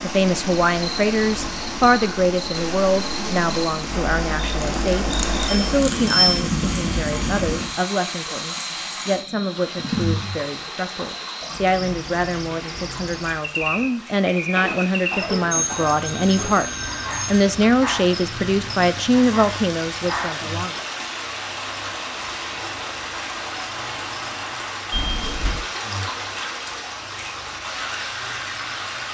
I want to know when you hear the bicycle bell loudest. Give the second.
6 s.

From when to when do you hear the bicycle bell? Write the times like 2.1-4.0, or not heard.
4.6-6.4, 15.5-17.5, 24.9-25.6.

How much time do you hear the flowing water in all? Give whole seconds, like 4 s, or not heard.
29 s.